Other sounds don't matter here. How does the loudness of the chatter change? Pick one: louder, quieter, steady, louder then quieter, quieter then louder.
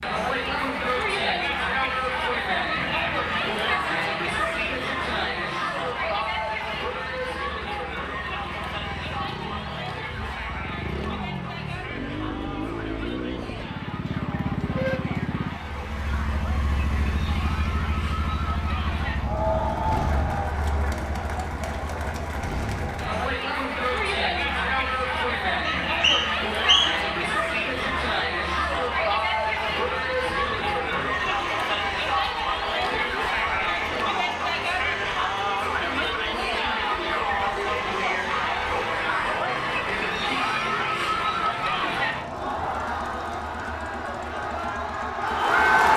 quieter then louder.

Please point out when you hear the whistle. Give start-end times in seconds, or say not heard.
25.6-27.1.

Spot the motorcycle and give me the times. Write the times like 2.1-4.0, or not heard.
0.0-45.9.